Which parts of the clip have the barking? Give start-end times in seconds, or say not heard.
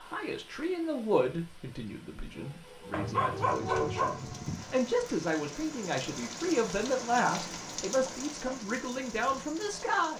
2.9-4.8.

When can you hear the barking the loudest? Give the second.
3 s.